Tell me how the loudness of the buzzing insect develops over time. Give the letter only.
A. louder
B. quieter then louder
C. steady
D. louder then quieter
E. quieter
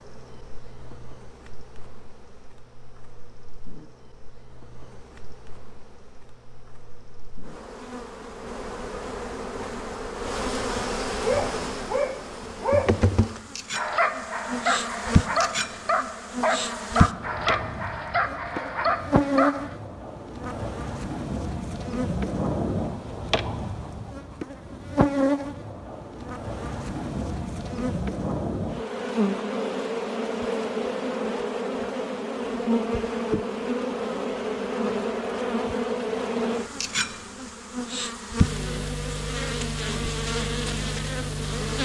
A.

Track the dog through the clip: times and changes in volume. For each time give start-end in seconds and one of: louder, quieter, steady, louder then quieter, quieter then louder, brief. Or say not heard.
11.2-19.8 steady.